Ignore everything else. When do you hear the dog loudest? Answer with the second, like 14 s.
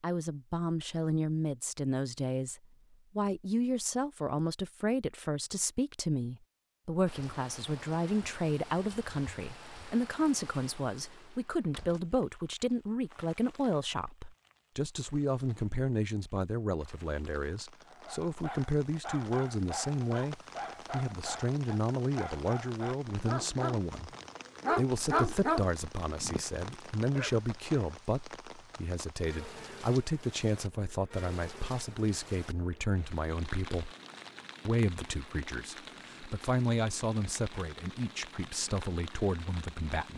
25 s.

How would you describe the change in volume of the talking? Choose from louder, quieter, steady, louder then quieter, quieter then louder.
steady.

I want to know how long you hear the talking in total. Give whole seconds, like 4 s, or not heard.
39 s.